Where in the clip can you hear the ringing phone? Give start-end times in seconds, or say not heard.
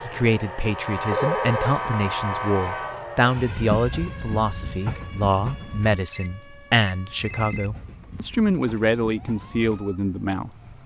1.1-1.8, 6.1-7.7.